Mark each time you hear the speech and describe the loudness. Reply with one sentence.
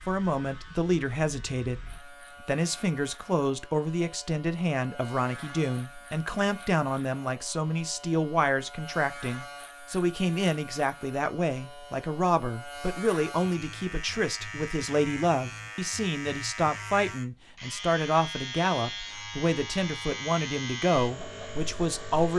You can hear the speech from 0.1 to 22.3 s, at a steady volume.